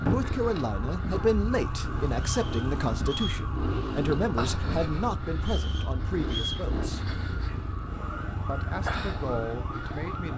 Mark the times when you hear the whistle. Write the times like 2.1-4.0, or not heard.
2.2-3.5, 5.3-6.7.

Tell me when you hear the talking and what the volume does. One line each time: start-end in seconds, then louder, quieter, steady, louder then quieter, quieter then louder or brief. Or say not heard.
0.0-7.2 quieter
8.4-10.3 brief.